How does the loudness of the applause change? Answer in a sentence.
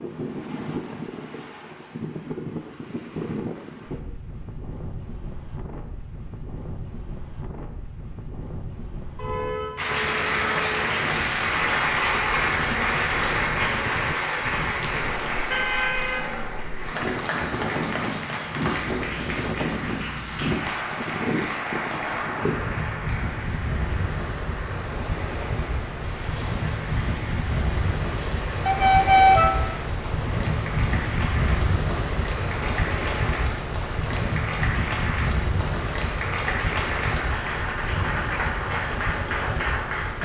The loudness of the applause goes down, then up.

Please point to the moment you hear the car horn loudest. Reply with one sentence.
The loudest moment of the car horn is at 29 seconds.